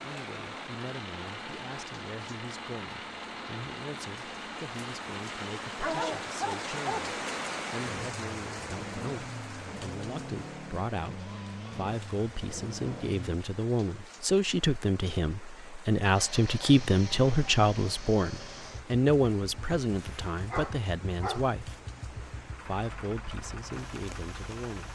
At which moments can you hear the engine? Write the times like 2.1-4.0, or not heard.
0.0-13.4, 16.1-24.9.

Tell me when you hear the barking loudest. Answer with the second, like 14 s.
6 s.